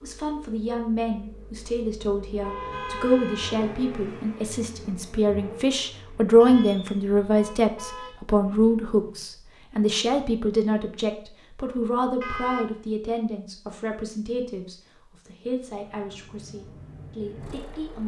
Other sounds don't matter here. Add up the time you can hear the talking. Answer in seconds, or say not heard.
18 s.